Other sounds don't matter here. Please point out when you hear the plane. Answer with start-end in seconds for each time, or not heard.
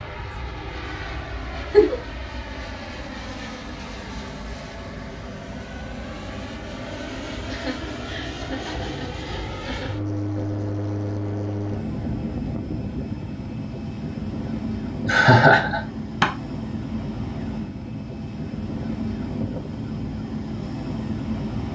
0.0-21.6.